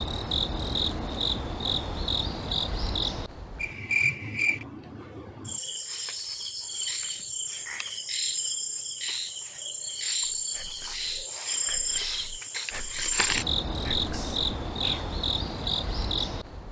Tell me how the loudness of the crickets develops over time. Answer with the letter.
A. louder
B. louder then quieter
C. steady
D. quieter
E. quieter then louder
C.